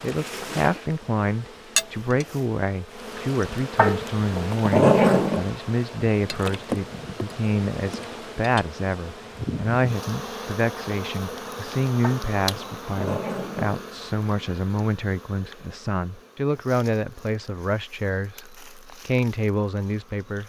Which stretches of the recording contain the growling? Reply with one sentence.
You can hear the growling from 3.8 to 5.5 s and from 12.0 to 13.9 s.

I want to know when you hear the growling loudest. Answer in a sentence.
The loudest moment of the growling is at 5 seconds.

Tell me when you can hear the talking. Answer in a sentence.
The talking can be heard from 0.0 to 20.4 s.